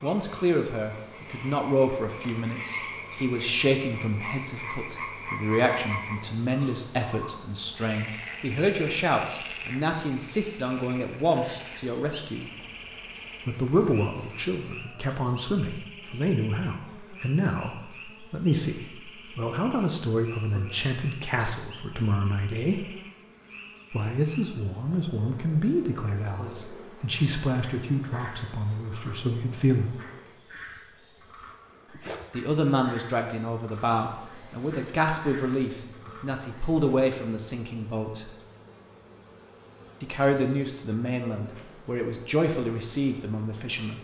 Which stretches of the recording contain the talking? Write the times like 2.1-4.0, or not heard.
0.0-12.5, 13.4-22.9, 23.9-30.0, 32.3-38.3, 40.0-43.9.